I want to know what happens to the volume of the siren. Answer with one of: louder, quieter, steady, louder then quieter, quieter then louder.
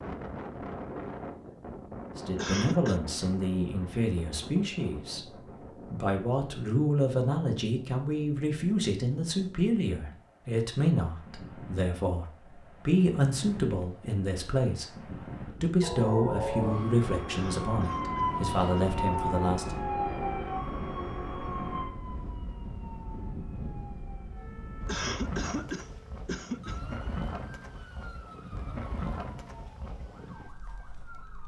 quieter.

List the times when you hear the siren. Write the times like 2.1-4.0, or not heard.
15.8-31.4.